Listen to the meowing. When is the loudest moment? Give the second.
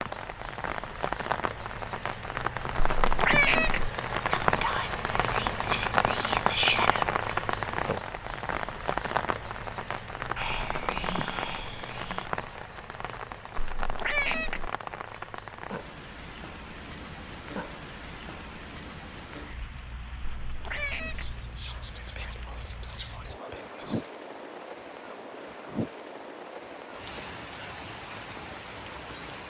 3 s.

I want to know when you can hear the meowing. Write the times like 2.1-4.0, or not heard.
2.8-3.9, 13.6-14.7, 20.2-21.4.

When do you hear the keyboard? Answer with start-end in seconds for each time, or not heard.
not heard.